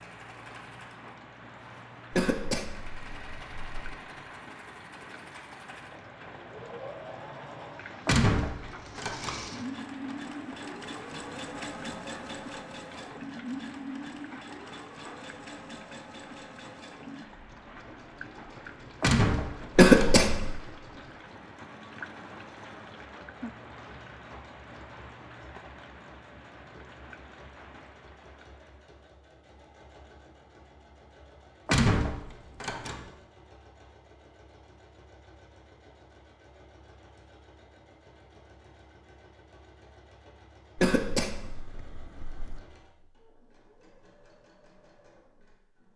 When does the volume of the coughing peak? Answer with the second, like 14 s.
20 s.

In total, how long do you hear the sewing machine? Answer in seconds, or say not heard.
46 s.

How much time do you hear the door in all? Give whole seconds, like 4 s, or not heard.
4 s.